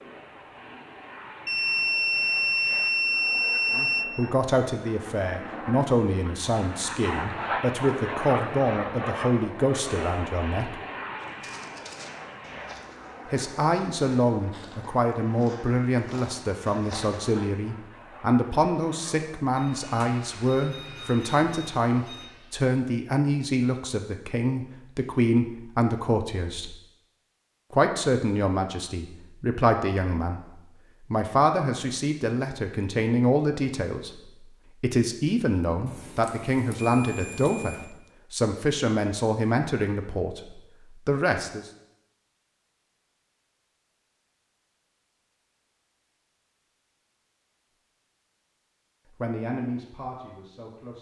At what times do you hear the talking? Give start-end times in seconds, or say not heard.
3.7-10.8, 13.2-26.8, 27.7-30.4, 31.0-41.6, 49.2-50.9.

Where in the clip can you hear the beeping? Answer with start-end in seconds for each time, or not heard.
1.4-4.0, 19.6-22.2, 35.9-37.9.